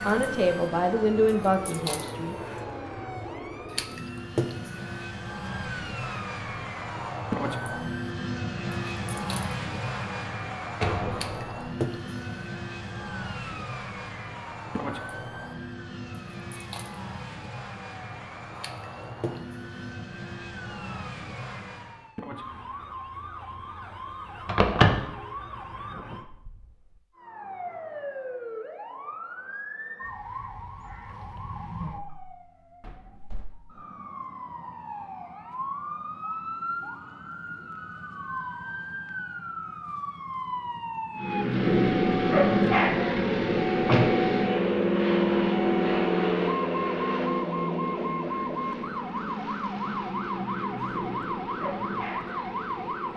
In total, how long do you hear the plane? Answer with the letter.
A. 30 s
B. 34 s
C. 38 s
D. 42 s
B.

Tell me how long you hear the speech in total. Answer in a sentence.
You can hear the speech for 2 seconds altogether.